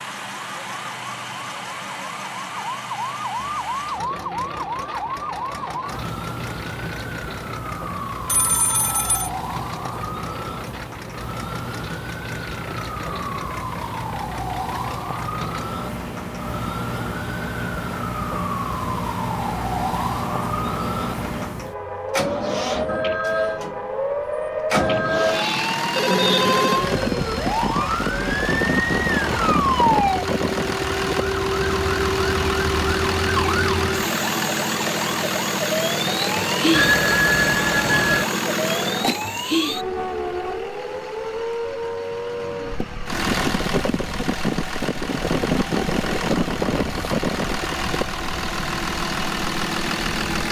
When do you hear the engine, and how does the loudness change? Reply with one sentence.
You can hear the engine from 0.0 to 50.4 s, getting louder.